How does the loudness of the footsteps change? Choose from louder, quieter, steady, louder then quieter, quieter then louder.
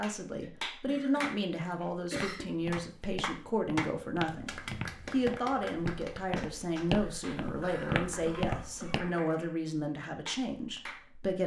louder.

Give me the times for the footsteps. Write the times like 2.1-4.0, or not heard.
1.9-9.1.